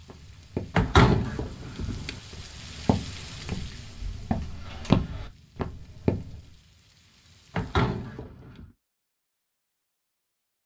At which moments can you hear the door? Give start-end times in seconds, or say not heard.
0.8-2.2, 7.5-8.7.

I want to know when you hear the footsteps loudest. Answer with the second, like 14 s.
5 s.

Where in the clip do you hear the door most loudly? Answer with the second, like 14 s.
1 s.